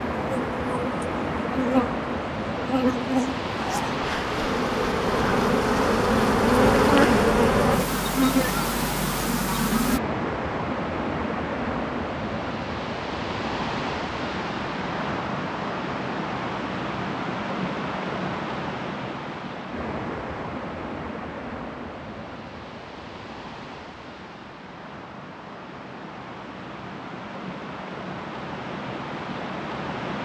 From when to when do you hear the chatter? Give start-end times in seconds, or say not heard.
not heard.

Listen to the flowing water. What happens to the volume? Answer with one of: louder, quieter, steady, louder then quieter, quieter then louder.
quieter.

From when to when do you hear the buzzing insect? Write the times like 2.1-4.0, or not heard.
0.1-10.0.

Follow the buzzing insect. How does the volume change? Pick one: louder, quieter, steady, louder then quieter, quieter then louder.
louder then quieter.